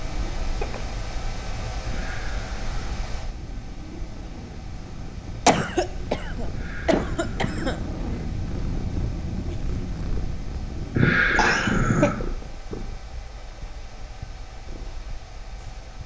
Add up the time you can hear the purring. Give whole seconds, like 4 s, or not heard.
16 s.